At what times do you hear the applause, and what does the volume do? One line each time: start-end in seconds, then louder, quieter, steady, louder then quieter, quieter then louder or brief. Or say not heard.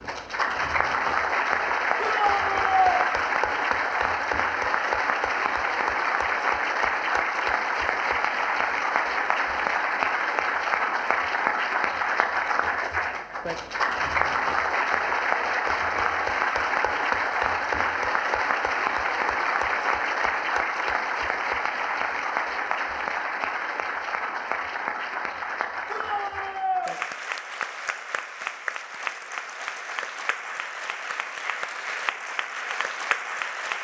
0.0-33.7 quieter.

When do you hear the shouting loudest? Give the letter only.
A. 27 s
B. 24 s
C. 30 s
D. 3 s
D.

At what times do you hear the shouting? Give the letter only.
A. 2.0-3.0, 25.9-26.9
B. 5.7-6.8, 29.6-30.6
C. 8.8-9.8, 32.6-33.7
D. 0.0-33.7
A.